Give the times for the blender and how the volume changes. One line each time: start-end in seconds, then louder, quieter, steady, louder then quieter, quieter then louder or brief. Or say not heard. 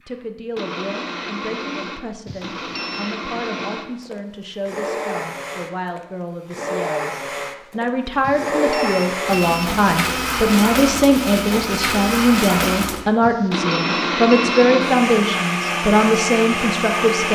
0.1-17.3 louder.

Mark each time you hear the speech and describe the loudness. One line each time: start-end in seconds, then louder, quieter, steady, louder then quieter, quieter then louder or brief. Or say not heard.
0.1-17.3 louder.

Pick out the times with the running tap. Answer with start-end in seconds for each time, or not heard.
not heard.